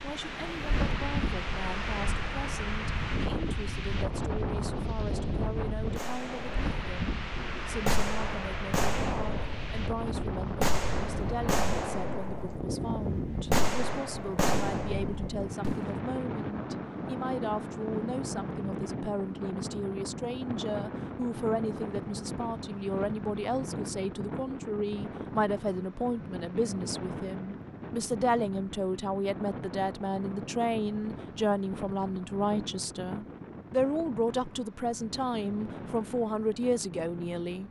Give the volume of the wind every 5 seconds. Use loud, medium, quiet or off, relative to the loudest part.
loud, loud, loud, loud, loud, medium, medium, medium.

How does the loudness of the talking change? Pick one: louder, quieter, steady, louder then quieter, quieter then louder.
louder.